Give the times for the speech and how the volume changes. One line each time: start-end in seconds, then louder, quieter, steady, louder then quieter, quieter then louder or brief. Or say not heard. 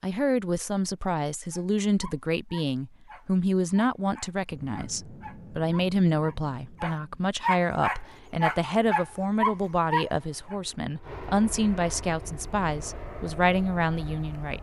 0.0-14.5 steady.